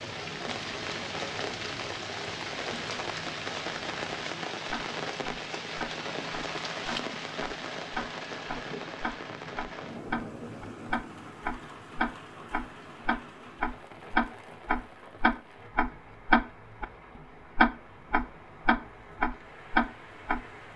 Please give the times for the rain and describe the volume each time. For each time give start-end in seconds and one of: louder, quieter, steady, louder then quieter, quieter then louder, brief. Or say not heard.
0.0-20.7 quieter.